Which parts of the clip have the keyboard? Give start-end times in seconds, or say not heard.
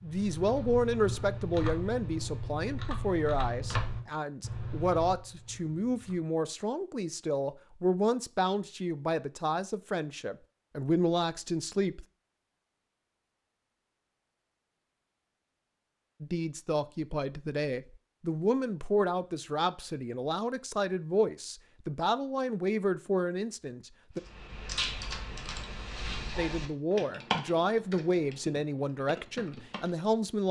0.0-6.3, 24.1-30.1.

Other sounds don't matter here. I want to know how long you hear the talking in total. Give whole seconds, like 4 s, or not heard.
24 s.